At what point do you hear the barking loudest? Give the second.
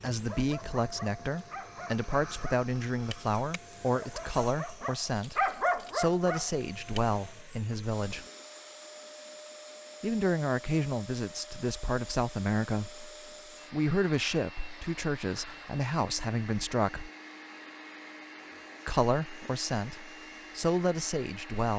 6 s.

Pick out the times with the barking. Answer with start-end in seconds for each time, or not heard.
0.2-7.0.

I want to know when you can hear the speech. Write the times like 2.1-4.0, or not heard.
0.0-8.2, 10.0-13.1, 13.7-17.1, 18.9-21.7.